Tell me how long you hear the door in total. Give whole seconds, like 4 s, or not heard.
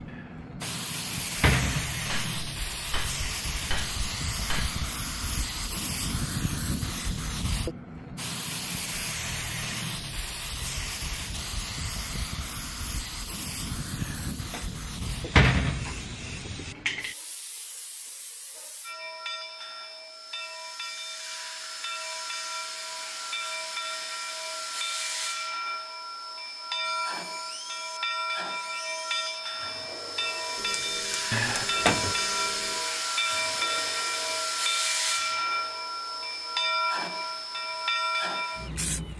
5 s.